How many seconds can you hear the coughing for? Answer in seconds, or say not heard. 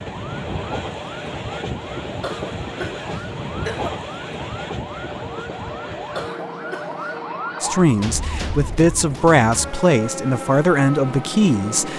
3 s.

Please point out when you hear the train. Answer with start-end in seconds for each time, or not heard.
0.0-11.9.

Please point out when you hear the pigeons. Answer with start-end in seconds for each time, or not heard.
not heard.